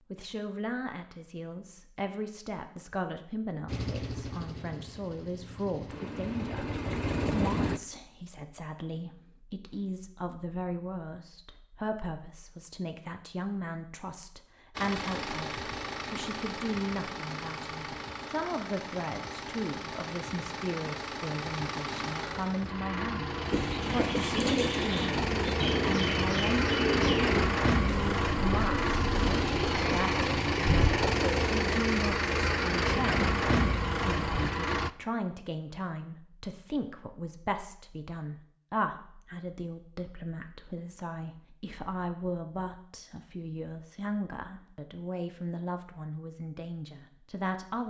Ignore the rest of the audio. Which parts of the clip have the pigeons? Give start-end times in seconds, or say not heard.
23.5-31.5.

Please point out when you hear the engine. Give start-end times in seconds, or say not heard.
3.6-7.8, 14.8-34.9.